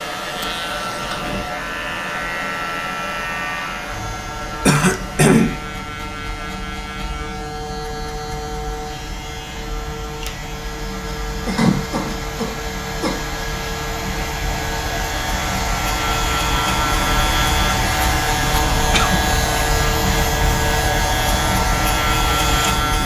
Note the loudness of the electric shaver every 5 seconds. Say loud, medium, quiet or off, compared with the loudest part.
medium, medium, medium, loud, loud.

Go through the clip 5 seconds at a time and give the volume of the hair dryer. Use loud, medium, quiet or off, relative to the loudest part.
medium, quiet, medium, loud, loud.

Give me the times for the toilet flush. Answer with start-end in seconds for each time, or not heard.
not heard.